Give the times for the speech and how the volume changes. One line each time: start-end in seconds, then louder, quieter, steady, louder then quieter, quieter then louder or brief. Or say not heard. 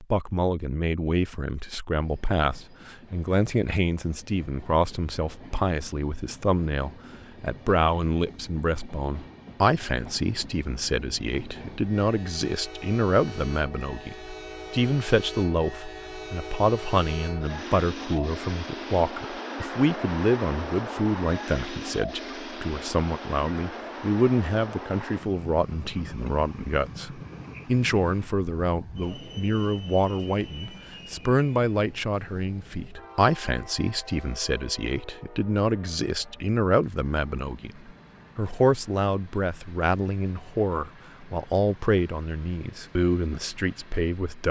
0.0-44.4 steady.